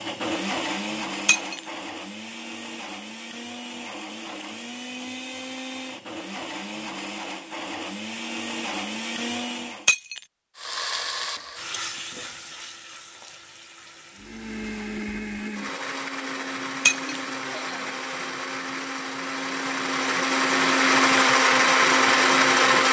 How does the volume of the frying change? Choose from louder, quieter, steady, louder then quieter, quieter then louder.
quieter.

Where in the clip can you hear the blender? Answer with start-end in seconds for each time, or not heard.
0.0-9.9, 14.2-22.8.